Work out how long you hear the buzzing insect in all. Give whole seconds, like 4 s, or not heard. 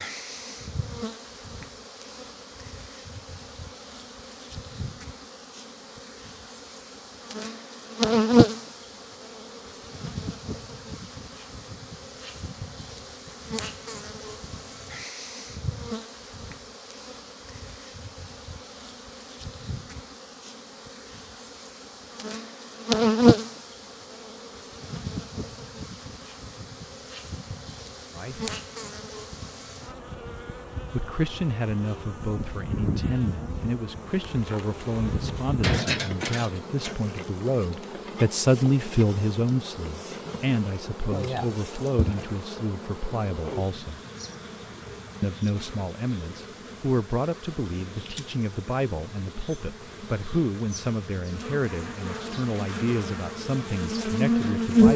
55 s.